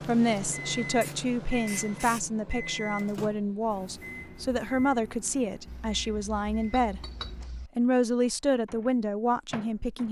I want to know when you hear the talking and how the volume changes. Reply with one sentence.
You can hear the talking from 0.1 to 7.0 s, at a steady volume; and briefly from 7.8 to 10.0 s.